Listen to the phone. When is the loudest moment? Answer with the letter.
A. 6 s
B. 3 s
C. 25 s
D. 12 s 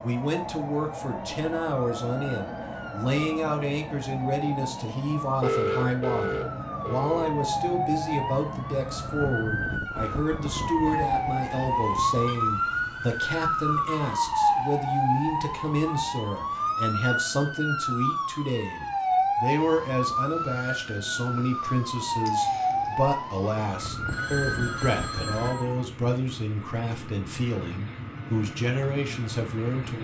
A.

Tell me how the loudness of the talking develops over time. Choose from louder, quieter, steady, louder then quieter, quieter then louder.
steady.